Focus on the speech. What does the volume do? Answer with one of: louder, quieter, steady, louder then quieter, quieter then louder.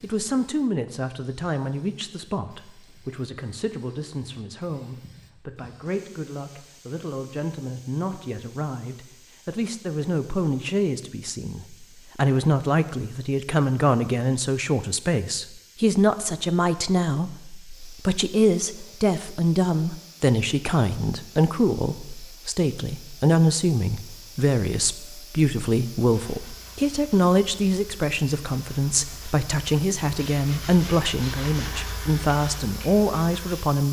louder.